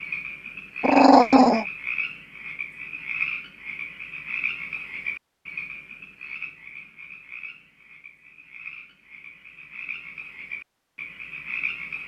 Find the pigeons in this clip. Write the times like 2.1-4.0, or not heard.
not heard.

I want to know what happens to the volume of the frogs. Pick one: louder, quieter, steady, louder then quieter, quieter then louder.
quieter then louder.